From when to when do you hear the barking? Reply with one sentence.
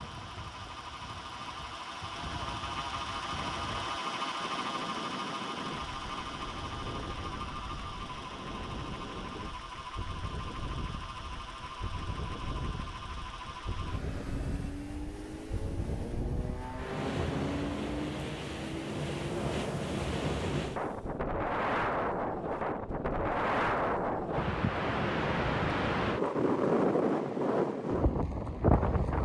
The barking can't be heard in this clip.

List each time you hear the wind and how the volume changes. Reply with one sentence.
The wind can be heard from 0.0 to 29.1 s, getting louder.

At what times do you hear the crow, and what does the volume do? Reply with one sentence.
The crow can't be heard in this clip.